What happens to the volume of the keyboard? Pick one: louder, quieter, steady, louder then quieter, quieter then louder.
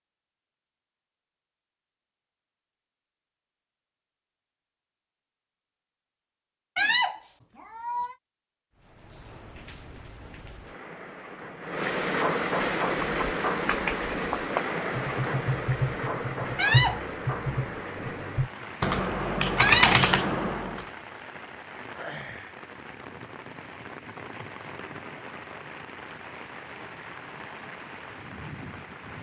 louder.